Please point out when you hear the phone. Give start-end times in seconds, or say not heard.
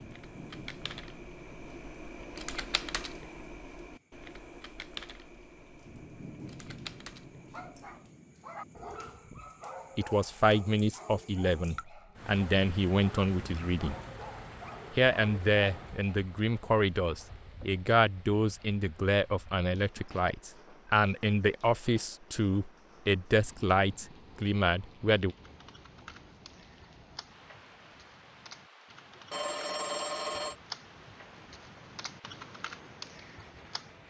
29.3-30.6.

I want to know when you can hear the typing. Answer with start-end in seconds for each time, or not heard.
0.0-8.1, 25.4-34.0.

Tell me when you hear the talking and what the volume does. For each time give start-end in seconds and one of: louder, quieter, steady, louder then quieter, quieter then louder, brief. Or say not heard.
9.9-13.9 quieter then louder
14.9-25.4 steady.